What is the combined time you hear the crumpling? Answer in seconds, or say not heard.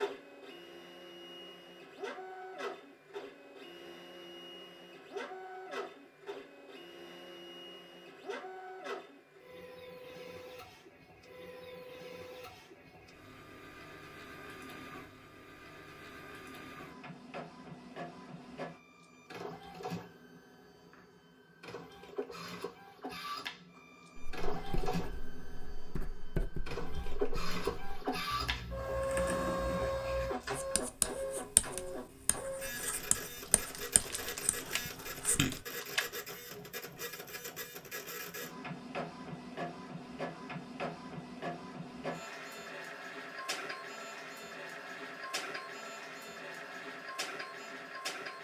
3 s.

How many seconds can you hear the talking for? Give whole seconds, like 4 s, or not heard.
not heard.